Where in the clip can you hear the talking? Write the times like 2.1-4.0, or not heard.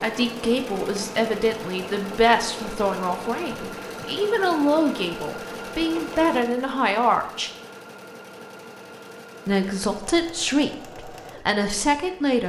0.0-7.5, 9.4-12.4.